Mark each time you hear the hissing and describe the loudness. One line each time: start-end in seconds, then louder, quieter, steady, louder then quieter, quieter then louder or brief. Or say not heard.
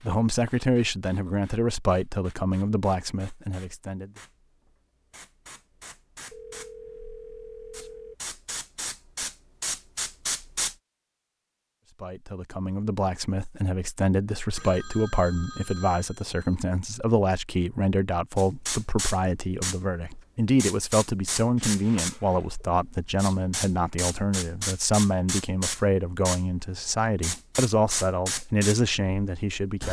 0.0-10.8 louder
18.4-29.8 steady.